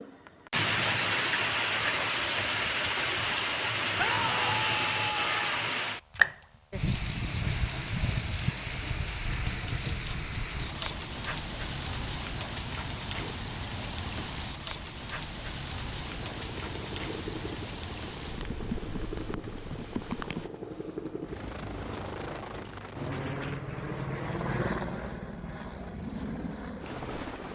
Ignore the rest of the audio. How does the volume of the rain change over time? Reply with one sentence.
The volume of the rain goes down.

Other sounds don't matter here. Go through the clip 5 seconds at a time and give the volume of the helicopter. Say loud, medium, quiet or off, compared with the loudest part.
off, off, off, medium, loud, loud.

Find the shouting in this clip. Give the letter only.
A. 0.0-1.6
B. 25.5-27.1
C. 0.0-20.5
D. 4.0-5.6
D.